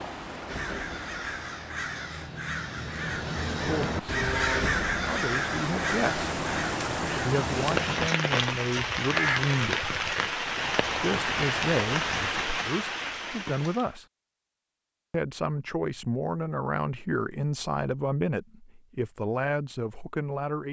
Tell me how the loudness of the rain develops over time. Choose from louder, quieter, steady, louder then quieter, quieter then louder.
louder.